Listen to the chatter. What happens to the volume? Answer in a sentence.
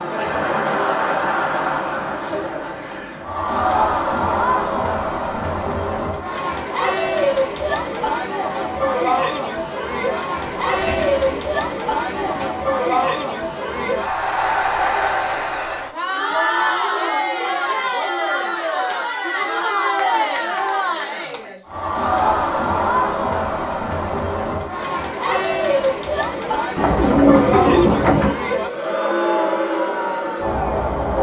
The loudness of the chatter stays about the same.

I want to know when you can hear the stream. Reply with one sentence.
The stream can't be heard in this clip.